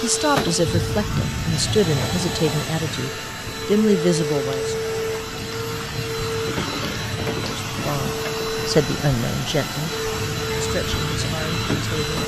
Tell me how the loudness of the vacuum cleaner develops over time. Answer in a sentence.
The loudness of the vacuum cleaner stays about the same.